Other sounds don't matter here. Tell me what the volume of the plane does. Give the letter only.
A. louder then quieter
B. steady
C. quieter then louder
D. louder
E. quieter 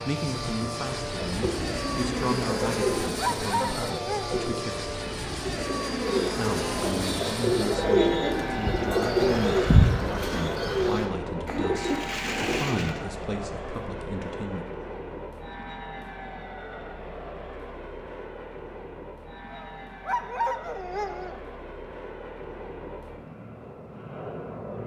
E.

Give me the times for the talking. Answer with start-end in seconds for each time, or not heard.
0.1-4.8, 6.3-14.7.